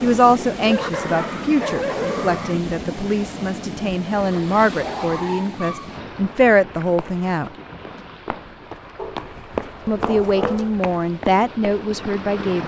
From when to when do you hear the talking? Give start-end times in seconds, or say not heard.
0.0-7.5, 9.8-12.6.